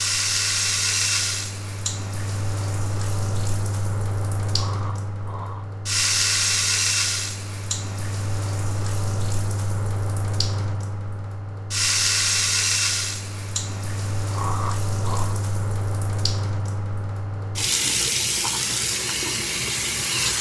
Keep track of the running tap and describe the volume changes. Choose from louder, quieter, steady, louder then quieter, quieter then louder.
steady.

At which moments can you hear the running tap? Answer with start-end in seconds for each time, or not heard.
0.0-20.3.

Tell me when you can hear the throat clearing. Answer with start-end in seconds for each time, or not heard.
4.5-5.7, 14.3-15.4.